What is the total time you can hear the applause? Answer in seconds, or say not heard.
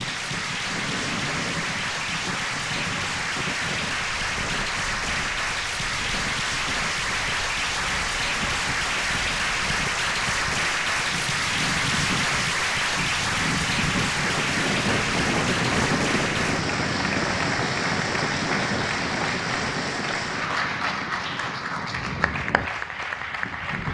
24 s.